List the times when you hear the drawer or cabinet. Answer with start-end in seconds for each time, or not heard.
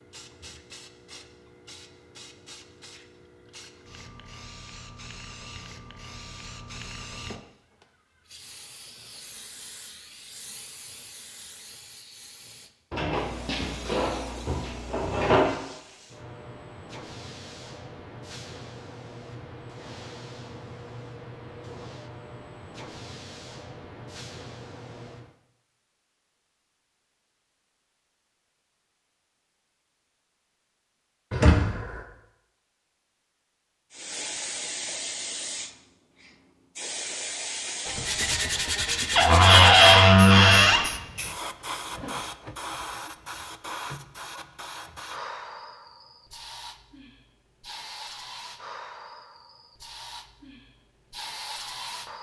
12.9-15.6, 31.3-32.0, 39.1-40.9.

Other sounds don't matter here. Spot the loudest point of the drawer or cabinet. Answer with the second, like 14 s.
40 s.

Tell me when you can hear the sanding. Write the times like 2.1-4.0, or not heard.
37.9-39.8.